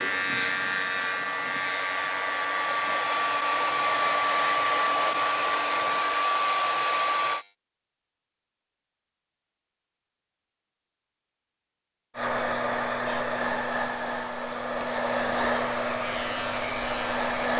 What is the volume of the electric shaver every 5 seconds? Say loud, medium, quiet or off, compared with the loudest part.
loud, medium, off, loud.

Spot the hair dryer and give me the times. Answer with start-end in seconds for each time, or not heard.
0.0-7.5, 12.2-17.5.